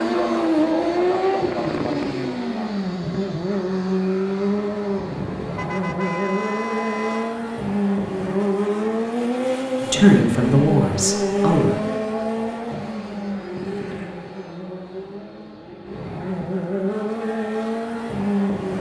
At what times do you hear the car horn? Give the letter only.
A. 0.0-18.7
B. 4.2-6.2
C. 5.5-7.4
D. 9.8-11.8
C.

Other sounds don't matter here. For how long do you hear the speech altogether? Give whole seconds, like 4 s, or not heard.
2 s.